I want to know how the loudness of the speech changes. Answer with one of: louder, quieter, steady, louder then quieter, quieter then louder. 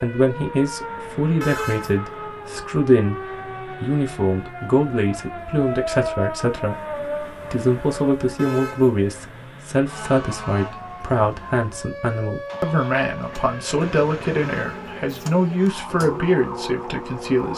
steady.